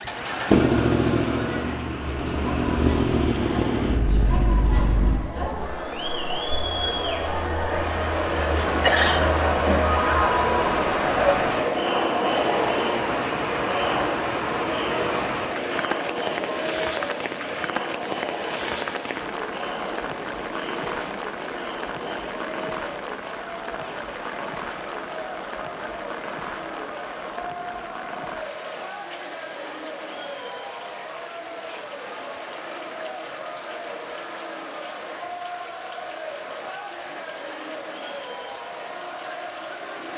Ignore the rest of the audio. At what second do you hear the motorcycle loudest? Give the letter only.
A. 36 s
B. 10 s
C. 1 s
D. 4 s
C.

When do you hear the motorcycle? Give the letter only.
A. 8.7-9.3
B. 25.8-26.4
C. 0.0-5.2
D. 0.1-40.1
C.